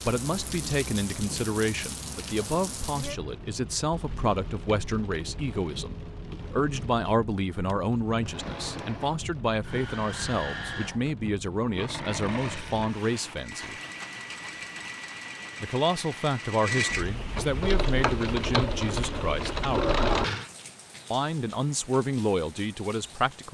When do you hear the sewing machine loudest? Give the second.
20 s.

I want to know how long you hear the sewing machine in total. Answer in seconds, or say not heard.
12 s.